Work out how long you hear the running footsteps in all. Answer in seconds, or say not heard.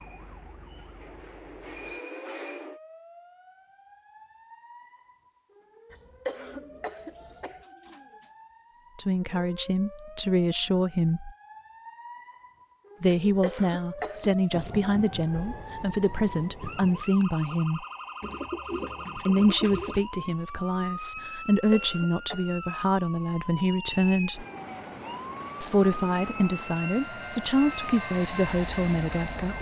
not heard.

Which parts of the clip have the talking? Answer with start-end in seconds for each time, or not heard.
8.9-11.3, 13.0-17.9, 19.1-24.4, 25.6-29.5.